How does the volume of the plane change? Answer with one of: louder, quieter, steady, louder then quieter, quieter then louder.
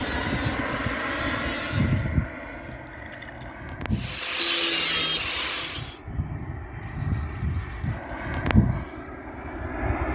quieter then louder.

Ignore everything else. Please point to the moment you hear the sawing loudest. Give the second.
5 s.